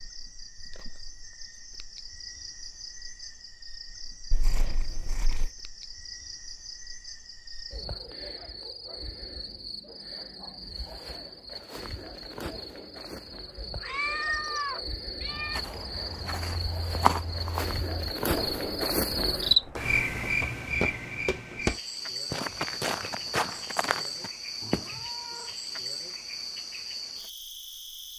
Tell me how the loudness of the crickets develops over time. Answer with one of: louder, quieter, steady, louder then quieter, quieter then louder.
louder then quieter.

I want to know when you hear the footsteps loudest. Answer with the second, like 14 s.
17 s.